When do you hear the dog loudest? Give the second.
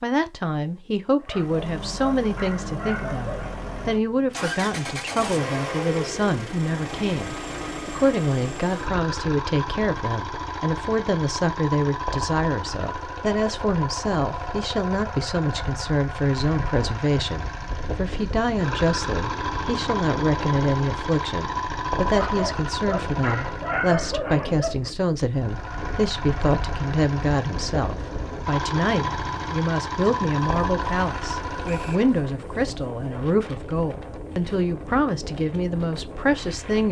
24 s.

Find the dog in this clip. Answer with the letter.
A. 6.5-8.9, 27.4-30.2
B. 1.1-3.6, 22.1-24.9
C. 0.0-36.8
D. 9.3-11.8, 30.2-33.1
B.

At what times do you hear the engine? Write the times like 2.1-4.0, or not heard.
1.3-23.9, 25.3-32.3.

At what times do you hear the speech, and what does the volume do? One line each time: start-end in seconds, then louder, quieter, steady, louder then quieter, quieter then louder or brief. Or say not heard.
0.0-36.8 steady.